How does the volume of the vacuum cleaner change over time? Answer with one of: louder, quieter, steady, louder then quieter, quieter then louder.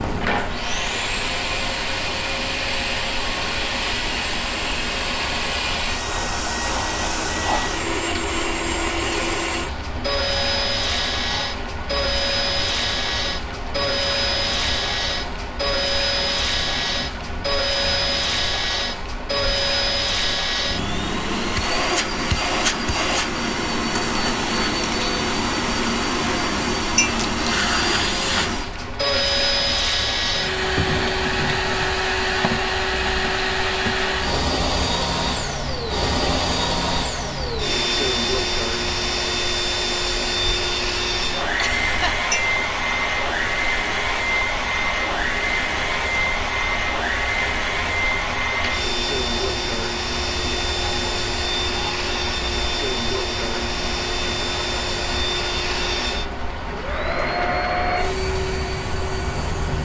steady.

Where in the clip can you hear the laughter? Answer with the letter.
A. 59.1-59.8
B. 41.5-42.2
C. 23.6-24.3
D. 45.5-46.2
B.